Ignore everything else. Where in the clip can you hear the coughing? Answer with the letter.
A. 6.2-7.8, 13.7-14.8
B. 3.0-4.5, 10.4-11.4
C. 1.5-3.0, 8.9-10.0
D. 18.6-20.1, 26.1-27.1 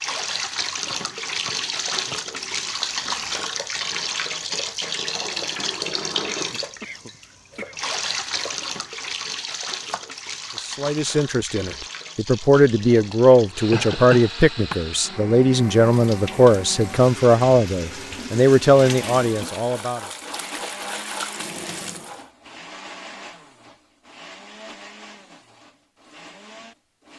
A.